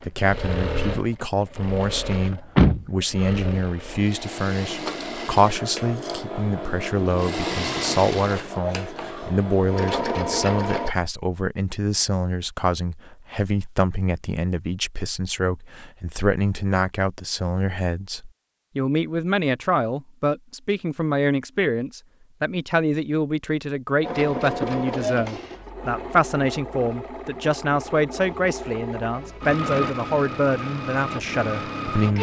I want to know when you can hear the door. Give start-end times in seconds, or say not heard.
2.1-3.4.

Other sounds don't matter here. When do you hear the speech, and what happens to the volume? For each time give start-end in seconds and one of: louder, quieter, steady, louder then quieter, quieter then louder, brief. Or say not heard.
0.0-32.1 steady.